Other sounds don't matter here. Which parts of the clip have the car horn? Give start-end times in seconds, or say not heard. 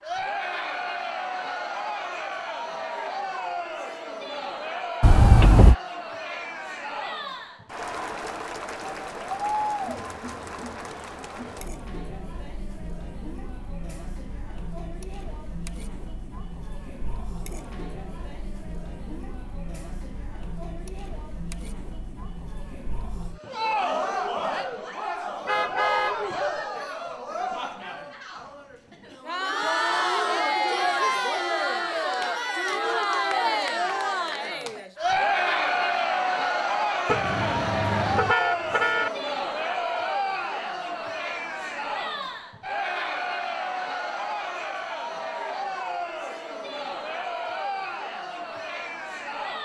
5.0-5.8, 25.4-26.2, 37.0-39.1.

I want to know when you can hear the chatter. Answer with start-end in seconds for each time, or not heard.
0.0-49.6.